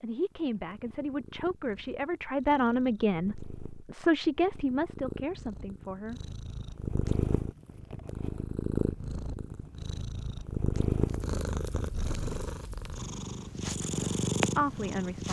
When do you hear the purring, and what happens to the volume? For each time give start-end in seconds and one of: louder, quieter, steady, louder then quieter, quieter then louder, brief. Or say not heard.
0.0-15.2 louder.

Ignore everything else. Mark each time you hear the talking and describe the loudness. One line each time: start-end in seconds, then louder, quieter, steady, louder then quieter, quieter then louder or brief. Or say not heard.
0.0-6.2 louder then quieter
14.6-15.2 brief.